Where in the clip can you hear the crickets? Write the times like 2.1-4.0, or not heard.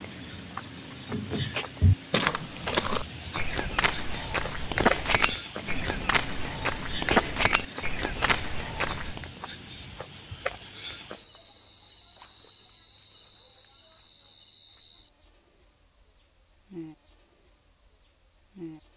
0.0-18.9.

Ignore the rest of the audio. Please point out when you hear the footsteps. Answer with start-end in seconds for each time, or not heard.
1.1-9.3.